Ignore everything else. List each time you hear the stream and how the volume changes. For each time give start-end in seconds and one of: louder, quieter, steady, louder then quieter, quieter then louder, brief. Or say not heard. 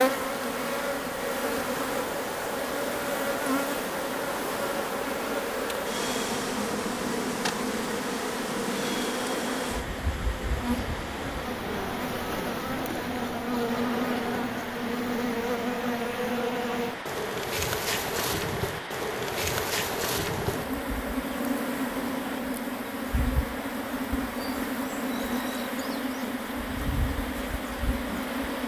0.0-28.6 steady.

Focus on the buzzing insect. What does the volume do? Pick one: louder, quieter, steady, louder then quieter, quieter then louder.
steady.